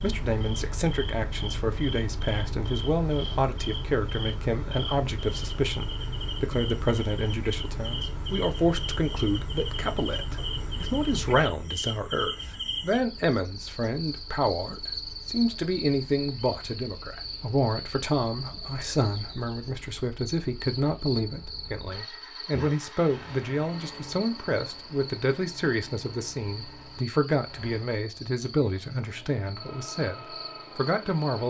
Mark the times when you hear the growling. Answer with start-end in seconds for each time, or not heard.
not heard.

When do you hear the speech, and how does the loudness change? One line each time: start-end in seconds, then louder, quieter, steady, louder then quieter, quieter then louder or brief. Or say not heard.
0.0-31.4 steady.